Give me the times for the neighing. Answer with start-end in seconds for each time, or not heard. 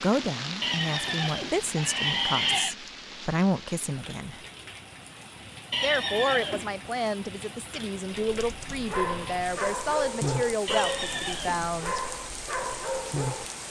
0.6-2.8, 5.7-6.8, 10.7-11.7.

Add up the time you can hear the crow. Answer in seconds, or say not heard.
not heard.